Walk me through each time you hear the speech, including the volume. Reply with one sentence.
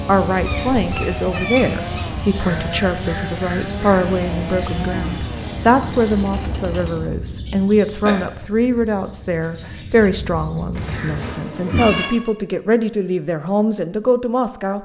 You can hear the speech from 0.1 to 14.8 s, at a steady volume.